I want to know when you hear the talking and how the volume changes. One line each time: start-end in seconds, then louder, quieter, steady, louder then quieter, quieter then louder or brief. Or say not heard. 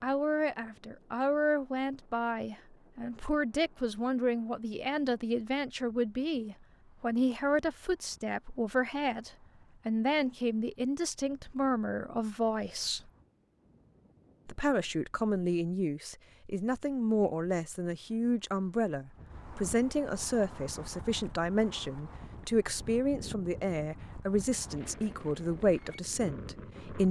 0.0-13.1 steady
14.4-27.0 steady.